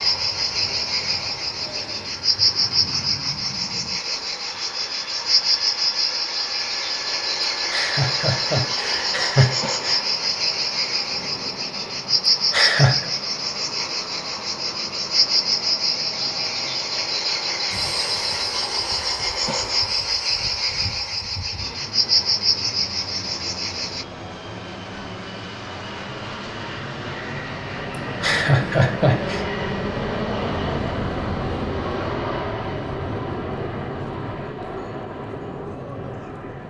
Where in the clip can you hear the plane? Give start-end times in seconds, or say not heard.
0.0-36.6.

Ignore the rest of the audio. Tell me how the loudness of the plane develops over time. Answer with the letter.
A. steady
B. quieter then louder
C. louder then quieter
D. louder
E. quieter
D.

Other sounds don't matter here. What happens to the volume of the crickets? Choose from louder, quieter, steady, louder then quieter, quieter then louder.
steady.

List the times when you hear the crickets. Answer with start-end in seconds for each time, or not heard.
0.0-24.1.